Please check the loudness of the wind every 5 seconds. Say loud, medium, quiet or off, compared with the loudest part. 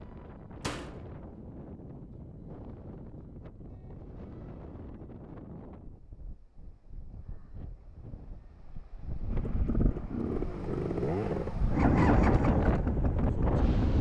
quiet, quiet, loud.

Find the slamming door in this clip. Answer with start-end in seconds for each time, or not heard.
0.6-1.1.